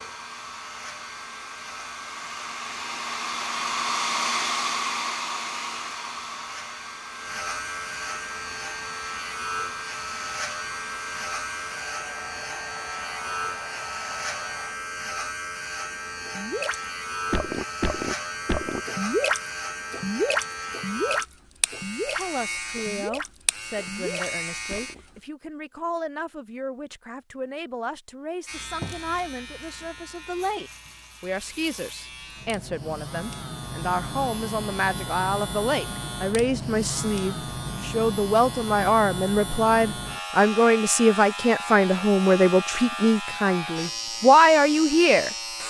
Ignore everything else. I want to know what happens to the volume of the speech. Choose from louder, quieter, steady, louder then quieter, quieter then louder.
louder.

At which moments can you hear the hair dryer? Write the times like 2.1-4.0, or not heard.
0.0-14.8.